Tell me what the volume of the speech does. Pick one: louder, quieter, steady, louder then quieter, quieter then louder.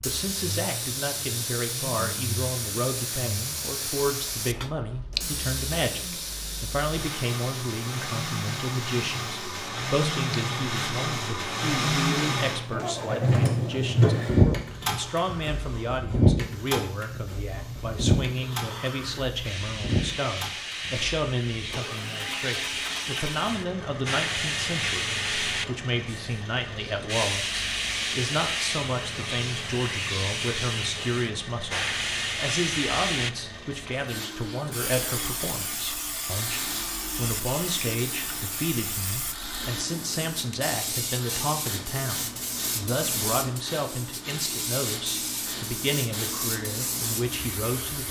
steady.